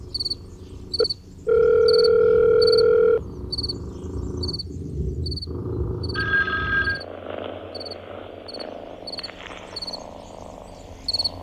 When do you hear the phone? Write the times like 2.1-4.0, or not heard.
1.0-3.2, 6.2-7.0.